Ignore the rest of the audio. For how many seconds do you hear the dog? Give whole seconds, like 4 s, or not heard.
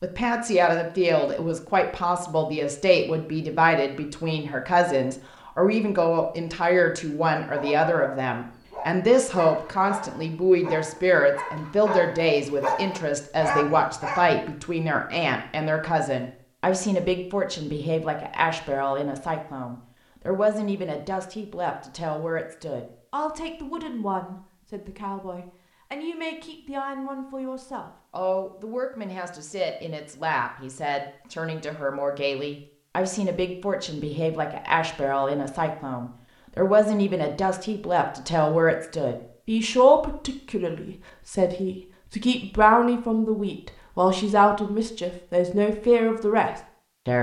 7 s.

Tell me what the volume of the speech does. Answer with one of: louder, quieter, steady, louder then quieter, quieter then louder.
quieter then louder.